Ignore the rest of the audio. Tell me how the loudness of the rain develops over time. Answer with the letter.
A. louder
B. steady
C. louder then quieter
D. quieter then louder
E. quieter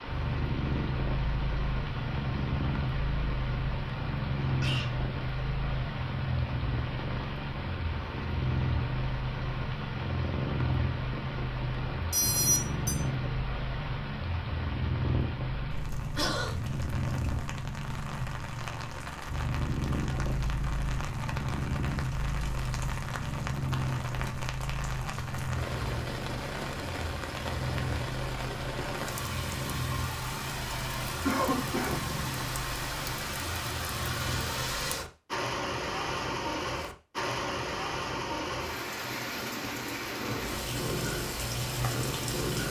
A.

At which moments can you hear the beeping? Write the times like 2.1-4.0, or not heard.
12.1-13.0.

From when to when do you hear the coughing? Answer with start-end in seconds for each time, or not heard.
4.5-4.9, 16.1-16.6, 31.2-32.1.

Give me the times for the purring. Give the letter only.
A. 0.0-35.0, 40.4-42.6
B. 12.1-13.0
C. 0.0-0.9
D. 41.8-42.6
A.